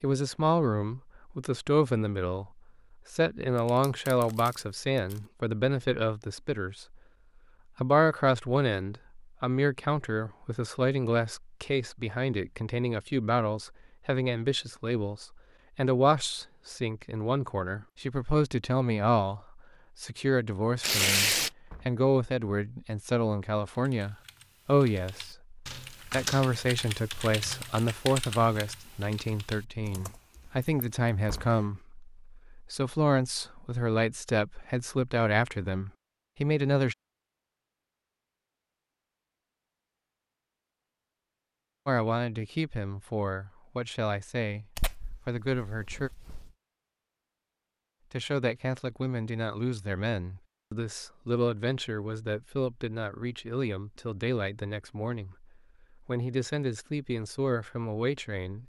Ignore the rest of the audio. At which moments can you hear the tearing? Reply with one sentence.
The tearing can be heard from 3.6 to 5.2 s, from 20.8 to 21.5 s and from 44.8 to 46.5 s.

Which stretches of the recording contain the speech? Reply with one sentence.
The speech can be heard from 0.0 to 2.5 s, from 3.1 to 7.0 s, from 7.8 to 37.0 s, from 41.9 to 46.1 s and from 48.1 to 58.6 s.